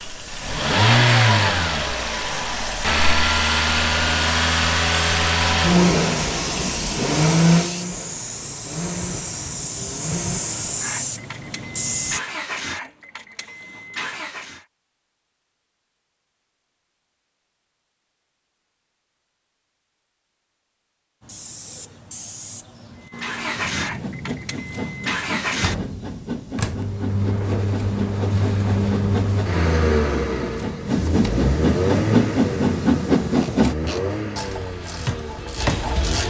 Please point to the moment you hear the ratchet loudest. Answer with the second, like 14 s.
36 s.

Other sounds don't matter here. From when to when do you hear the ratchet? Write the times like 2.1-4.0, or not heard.
33.2-36.2.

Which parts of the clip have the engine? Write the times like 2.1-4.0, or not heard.
0.0-14.7, 23.0-36.2.